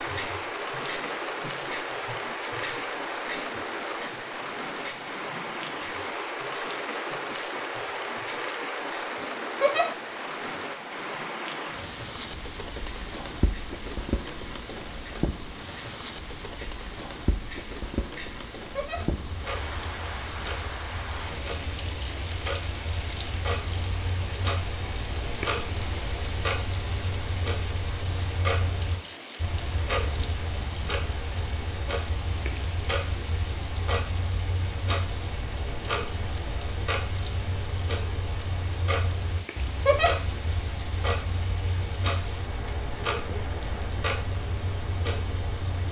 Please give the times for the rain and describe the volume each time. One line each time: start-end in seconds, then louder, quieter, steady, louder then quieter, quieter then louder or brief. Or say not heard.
0.0-45.8 quieter.